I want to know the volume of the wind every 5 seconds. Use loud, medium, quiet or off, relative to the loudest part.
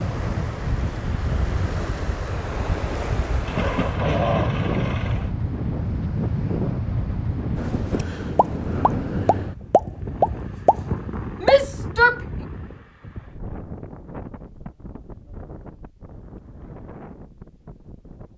loud, loud, medium, quiet.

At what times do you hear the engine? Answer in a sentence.
The engine can be heard from 3.4 to 5.3 s.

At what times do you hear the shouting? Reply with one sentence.
The shouting can be heard from 11.4 to 12.2 s.